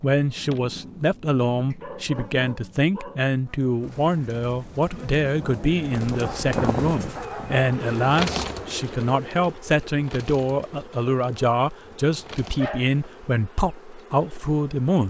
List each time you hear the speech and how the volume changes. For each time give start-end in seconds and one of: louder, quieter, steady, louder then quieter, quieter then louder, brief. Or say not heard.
0.0-15.0 steady.